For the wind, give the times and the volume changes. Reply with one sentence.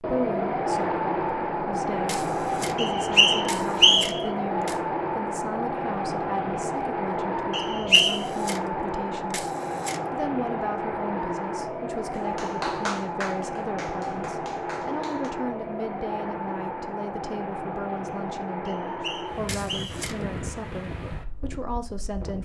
You can hear the wind from 0.0 to 22.3 s, getting quieter.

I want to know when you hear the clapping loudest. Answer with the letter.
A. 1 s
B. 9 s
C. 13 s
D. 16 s
C.